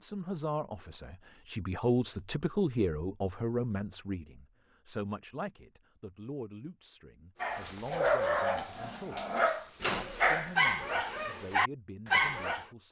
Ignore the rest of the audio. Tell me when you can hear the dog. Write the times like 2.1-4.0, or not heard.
7.4-12.7.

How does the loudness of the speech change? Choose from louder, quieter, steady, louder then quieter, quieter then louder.
quieter.